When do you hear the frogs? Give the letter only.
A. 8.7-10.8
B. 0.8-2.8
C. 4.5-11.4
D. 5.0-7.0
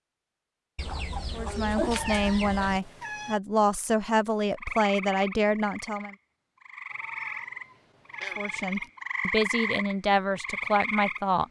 C.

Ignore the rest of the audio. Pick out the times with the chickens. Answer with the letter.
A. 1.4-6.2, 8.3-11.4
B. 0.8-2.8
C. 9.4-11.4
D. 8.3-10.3
B.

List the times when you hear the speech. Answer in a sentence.
The speech can be heard from 1.4 to 6.2 s and from 8.3 to 11.4 s.